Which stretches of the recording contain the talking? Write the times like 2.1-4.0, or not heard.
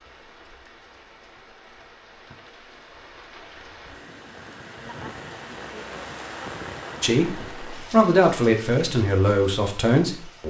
7.0-10.4.